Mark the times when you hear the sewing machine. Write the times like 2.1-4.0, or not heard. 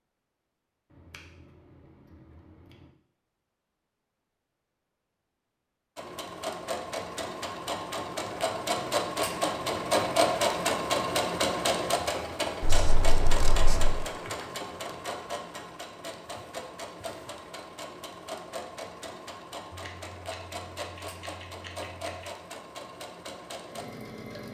6.0-24.4.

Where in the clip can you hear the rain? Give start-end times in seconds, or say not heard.
not heard.